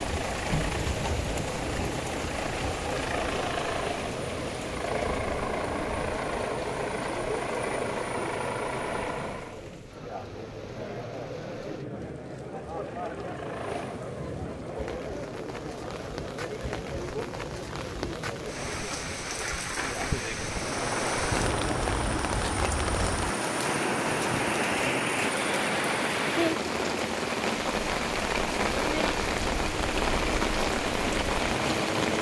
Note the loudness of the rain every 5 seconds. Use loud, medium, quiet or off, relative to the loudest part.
medium, quiet, quiet, medium, loud, loud, loud.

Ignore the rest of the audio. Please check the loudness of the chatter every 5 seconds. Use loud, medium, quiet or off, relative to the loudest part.
loud, loud, loud, loud, loud, off, off.